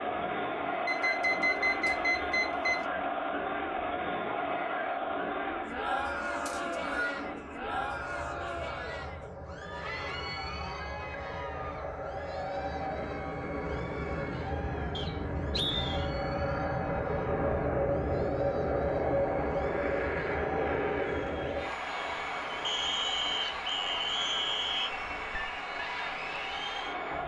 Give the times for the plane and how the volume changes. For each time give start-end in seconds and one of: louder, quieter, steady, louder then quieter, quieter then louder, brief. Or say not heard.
0.0-27.2 louder then quieter.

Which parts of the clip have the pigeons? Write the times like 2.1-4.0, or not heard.
not heard.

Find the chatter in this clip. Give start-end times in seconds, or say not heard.
0.0-27.2.